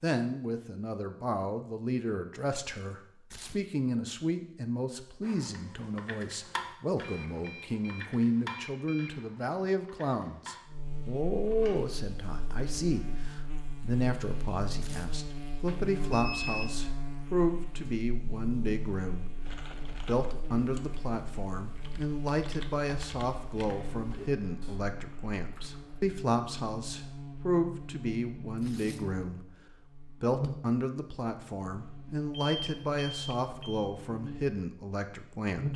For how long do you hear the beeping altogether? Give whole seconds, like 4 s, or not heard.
5 s.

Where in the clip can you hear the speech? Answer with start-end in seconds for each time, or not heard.
0.0-35.7.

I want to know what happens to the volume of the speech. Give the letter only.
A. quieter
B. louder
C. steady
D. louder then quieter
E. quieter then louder
C.